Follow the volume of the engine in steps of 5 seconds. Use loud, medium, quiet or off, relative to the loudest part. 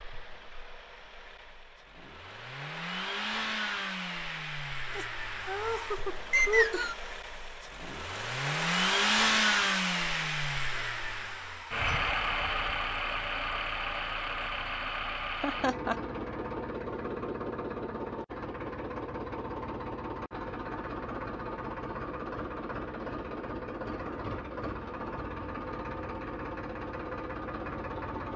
medium, loud, loud, medium, medium, medium.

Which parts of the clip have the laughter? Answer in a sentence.
You can hear the laughter from 5.0 to 6.9 s and from 15.4 to 16.0 s.